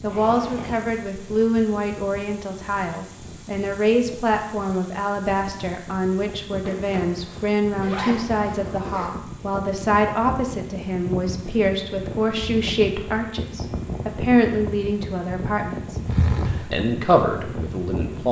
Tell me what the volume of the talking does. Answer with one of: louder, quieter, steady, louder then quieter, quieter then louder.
steady.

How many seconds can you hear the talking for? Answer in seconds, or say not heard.
18 s.